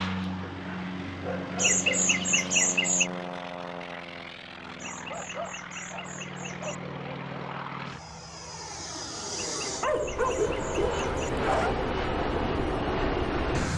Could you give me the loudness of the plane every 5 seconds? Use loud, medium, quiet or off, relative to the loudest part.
medium, medium, loud.